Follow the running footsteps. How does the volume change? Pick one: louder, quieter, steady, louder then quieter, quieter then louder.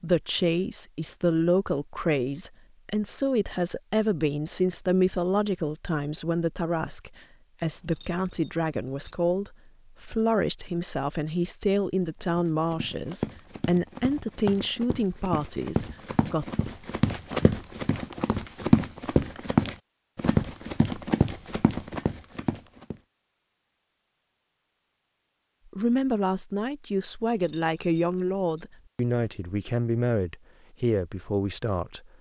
louder then quieter.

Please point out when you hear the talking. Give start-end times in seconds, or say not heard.
0.0-16.6, 25.7-32.1.